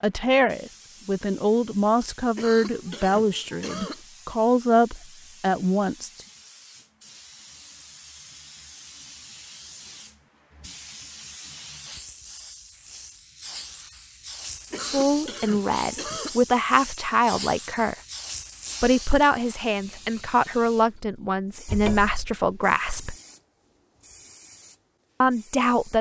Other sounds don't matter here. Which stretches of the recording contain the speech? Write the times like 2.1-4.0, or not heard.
0.0-6.2, 14.9-17.9, 18.8-23.1, 25.2-25.9.